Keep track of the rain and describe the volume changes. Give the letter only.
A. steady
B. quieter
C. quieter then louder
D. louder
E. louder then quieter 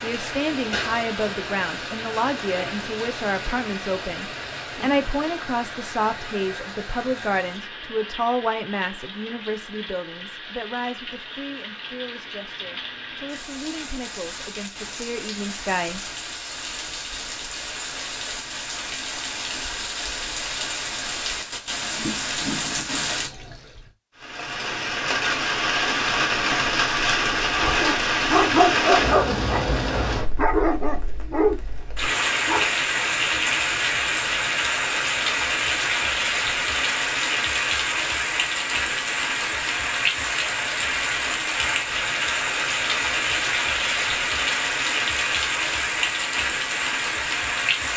D.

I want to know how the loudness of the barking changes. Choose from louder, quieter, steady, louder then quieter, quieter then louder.
quieter.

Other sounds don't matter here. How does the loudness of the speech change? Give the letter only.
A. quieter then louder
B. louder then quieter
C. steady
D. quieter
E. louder
D.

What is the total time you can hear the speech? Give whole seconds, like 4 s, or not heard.
16 s.